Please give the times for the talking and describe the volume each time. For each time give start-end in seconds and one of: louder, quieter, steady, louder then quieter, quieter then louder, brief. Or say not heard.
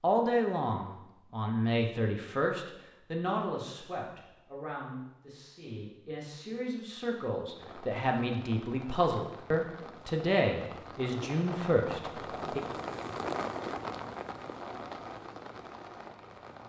0.0-12.6 quieter then louder.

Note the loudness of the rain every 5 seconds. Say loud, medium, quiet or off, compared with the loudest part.
off, medium, loud, medium.